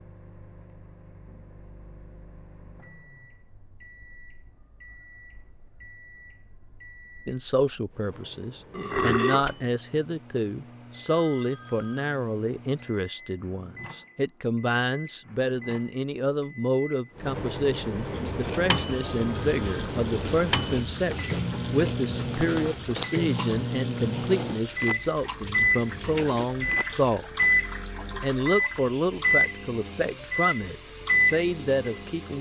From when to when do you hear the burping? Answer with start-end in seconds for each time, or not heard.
8.7-9.6.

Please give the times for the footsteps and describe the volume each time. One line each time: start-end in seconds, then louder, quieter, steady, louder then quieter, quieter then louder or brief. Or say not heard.
not heard.